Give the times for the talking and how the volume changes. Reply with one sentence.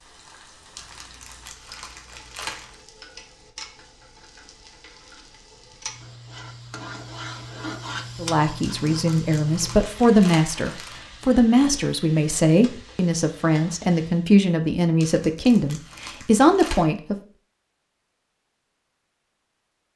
You can hear the talking from 8.2 to 17.1 s, at a steady volume.